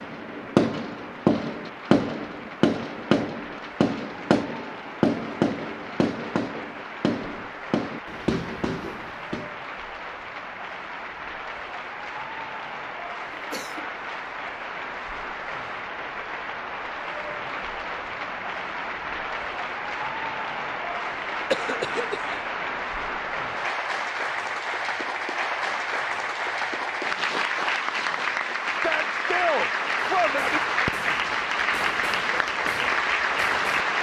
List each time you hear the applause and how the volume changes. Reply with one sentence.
You can hear the applause from 0.0 to 33.9 s, getting louder.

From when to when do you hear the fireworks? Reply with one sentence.
The fireworks can be heard from 0.0 to 9.5 s and from 30.2 to 33.9 s.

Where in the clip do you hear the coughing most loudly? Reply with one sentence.
The loudest moment of the coughing is at 22 seconds.